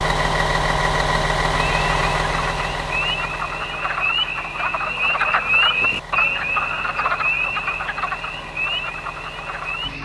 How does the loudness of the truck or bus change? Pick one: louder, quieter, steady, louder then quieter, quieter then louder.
quieter.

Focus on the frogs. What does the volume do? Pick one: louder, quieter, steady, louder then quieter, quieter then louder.
louder then quieter.